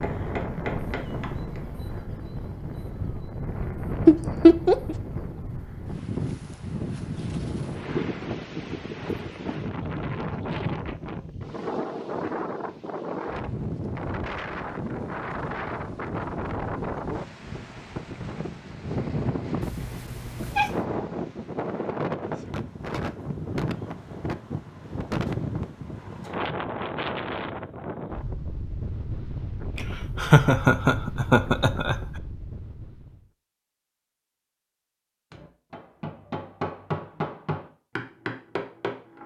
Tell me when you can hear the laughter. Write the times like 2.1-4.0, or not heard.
4.0-5.0, 29.8-31.9.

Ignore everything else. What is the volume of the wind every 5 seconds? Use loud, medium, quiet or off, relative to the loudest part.
loud, loud, loud, loud, loud, loud, medium, off.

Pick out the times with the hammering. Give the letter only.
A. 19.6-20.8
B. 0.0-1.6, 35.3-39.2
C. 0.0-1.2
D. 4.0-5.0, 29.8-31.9
B.